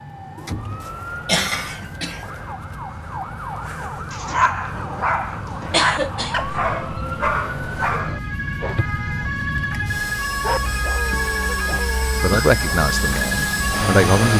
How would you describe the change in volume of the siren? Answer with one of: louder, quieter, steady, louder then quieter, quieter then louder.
louder.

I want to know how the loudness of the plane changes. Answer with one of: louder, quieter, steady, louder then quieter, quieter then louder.
louder.